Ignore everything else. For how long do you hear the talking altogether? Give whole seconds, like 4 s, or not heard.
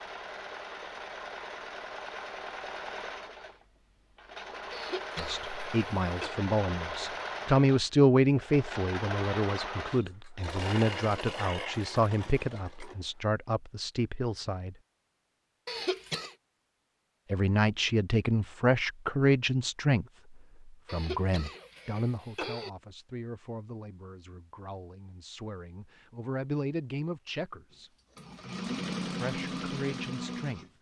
22 s.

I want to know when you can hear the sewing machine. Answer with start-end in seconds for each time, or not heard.
0.0-12.9, 27.7-30.7.